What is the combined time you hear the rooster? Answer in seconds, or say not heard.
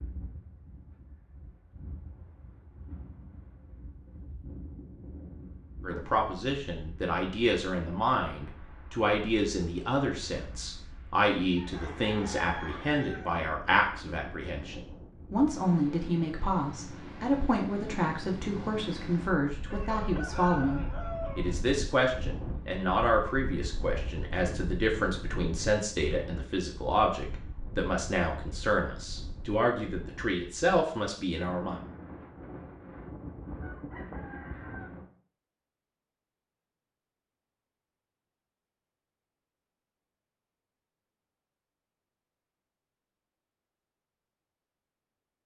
6 s.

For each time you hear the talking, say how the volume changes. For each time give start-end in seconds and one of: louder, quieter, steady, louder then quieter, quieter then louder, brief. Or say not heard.
5.8-31.8 steady.